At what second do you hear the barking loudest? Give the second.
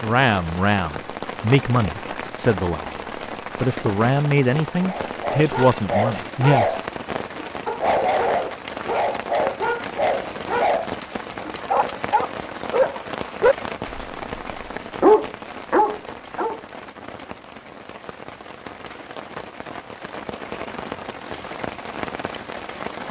15 s.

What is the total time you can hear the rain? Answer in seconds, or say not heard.
23 s.